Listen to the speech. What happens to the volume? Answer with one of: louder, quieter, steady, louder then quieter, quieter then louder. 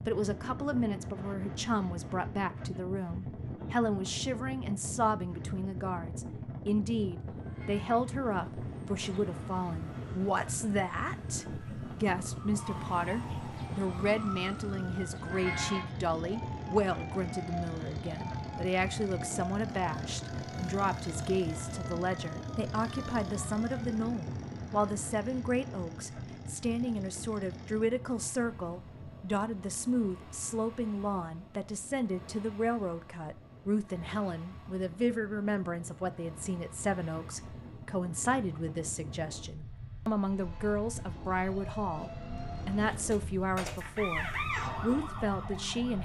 steady.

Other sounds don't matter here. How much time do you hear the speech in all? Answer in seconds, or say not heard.
46 s.